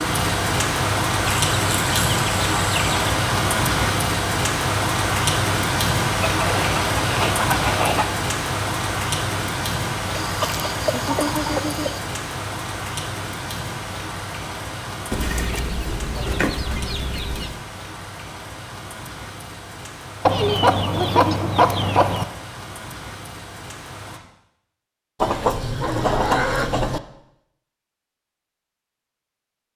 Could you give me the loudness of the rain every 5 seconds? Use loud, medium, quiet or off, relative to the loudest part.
loud, loud, medium, quiet, quiet, off.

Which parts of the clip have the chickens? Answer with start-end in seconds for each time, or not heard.
1.2-3.0, 6.3-8.2, 10.1-12.0, 15.1-17.6, 20.2-22.2, 25.2-27.0.